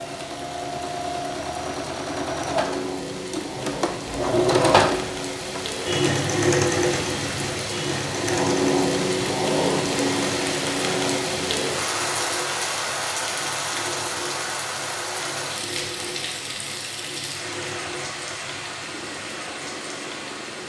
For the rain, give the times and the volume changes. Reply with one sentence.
The rain can be heard from 0.0 to 20.6 s, getting louder then quieter.